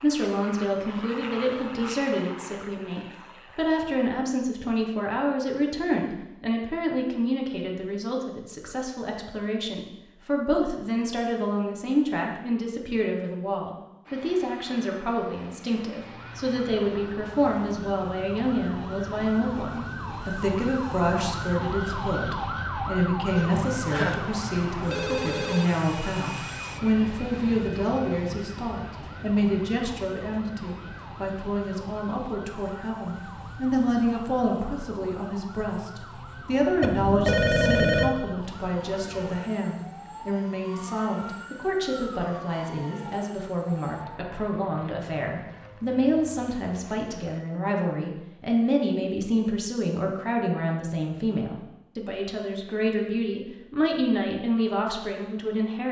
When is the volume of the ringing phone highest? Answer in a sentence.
The volume of the ringing phone peaks at 38 seconds.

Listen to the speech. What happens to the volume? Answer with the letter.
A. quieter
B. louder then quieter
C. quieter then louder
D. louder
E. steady
E.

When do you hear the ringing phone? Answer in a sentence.
The ringing phone can be heard from 23.4 to 25.7 s and from 36.8 to 38.1 s.